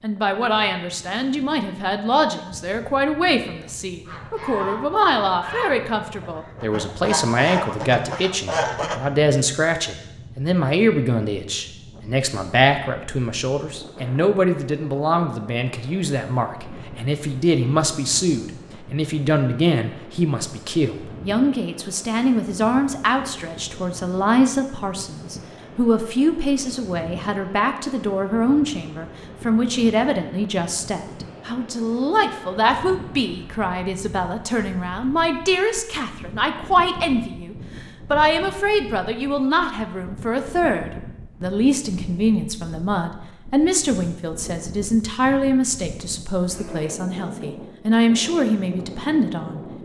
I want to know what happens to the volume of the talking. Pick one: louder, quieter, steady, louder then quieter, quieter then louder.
steady.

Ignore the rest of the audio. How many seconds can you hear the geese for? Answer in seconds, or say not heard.
5 s.